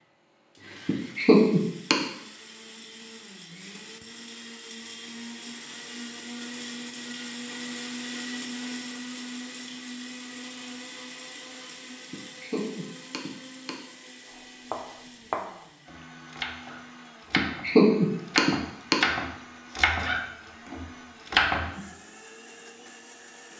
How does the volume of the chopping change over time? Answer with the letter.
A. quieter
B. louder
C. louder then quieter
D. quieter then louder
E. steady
B.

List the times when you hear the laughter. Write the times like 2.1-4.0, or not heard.
0.8-2.0, 12.1-13.7, 17.4-18.9.